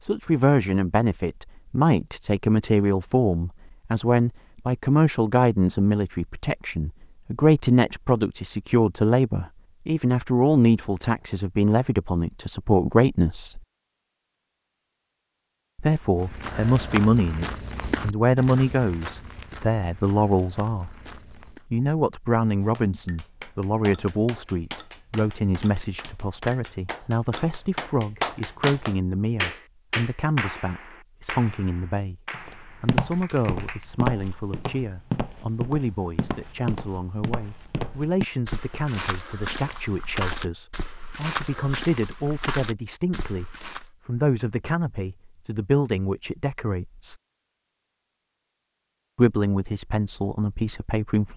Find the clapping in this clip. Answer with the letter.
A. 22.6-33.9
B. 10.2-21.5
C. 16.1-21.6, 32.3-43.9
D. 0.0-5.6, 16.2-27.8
A.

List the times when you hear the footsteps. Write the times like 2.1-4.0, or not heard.
16.1-21.6, 32.3-43.9.